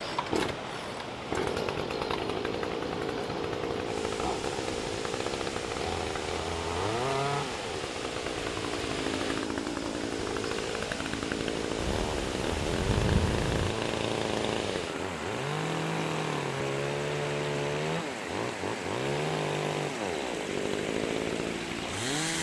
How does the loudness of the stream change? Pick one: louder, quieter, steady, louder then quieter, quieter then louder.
steady.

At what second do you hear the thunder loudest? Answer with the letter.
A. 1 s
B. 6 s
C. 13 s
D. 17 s
C.